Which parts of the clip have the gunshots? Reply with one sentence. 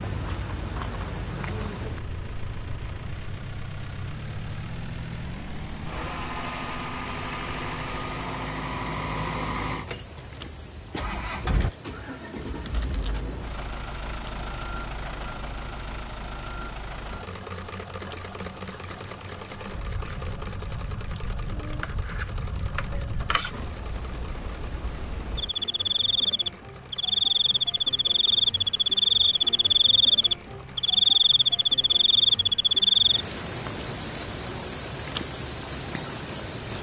You can't hear the gunshots here.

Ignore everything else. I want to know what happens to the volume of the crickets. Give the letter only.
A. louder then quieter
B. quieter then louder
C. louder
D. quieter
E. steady
B.